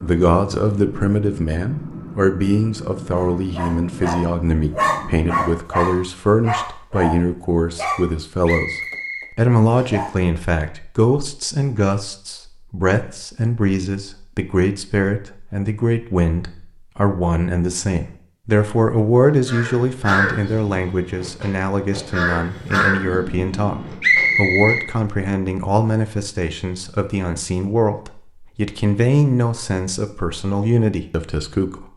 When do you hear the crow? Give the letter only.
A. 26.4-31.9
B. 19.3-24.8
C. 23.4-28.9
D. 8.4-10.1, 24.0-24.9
B.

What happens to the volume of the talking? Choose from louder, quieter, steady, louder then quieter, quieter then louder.
steady.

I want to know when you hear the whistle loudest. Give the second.
24 s.